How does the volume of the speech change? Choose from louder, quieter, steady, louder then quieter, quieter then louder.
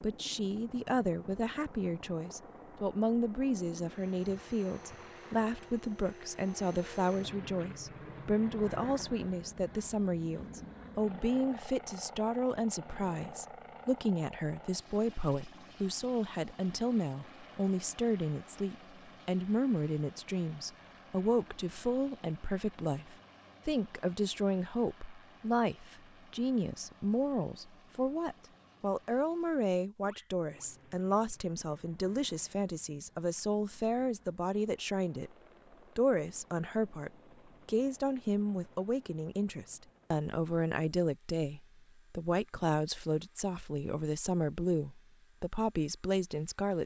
steady.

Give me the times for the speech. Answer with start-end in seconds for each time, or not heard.
0.0-35.3, 36.0-46.8.